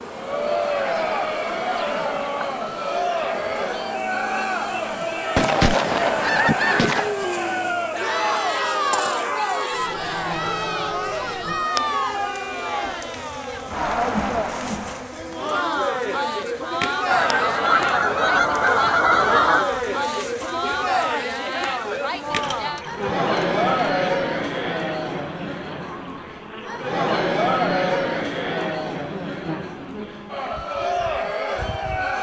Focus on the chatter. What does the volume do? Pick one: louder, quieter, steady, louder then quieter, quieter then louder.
steady.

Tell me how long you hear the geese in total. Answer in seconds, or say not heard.
6 s.